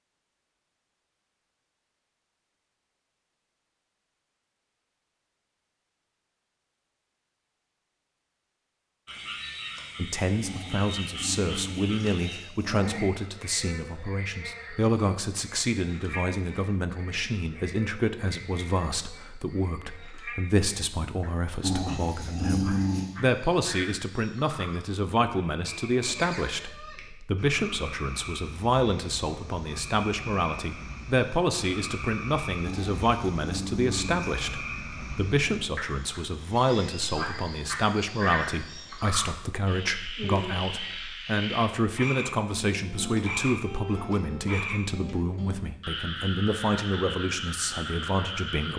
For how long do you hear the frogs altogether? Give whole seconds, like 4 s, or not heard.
40 s.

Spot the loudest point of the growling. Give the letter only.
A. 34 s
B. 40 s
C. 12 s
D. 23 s
D.